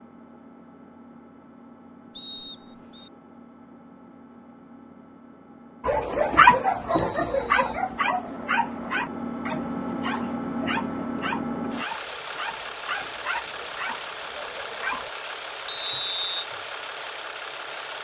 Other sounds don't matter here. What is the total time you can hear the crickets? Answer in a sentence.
You can't hear the crickets here.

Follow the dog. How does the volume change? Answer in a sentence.
The loudness of the dog goes down.